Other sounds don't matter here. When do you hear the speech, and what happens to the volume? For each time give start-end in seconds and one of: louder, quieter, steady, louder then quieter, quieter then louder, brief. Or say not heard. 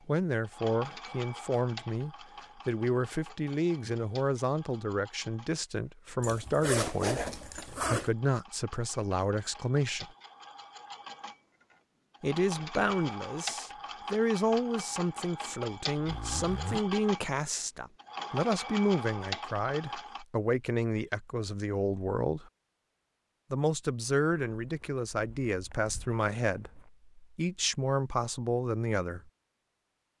0.1-10.1 steady
12.2-22.5 steady
23.5-29.3 steady.